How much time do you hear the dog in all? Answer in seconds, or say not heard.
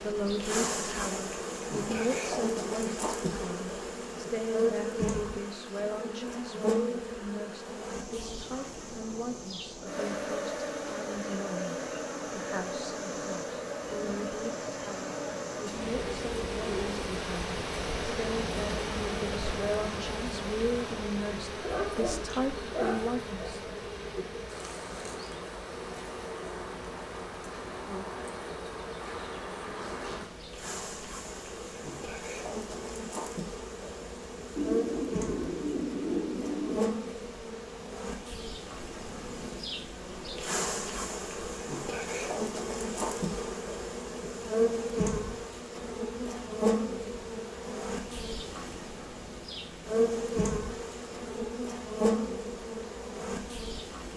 2 s.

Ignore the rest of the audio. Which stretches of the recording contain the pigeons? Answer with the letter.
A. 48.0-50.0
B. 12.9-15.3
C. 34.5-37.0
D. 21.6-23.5
C.